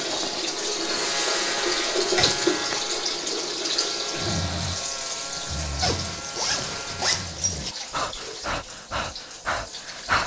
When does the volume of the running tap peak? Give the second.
2 s.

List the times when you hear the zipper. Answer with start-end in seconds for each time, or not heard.
2.1-2.6, 5.8-7.8.